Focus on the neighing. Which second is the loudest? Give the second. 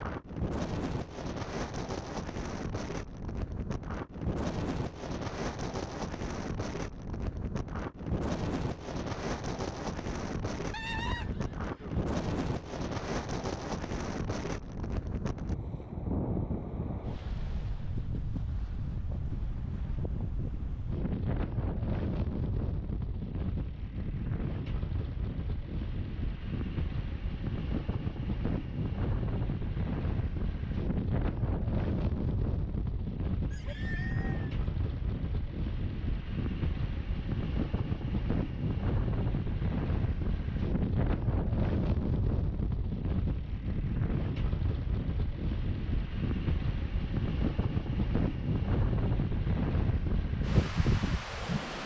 11 s.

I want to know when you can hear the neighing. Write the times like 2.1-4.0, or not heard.
10.7-12.0, 33.5-34.5.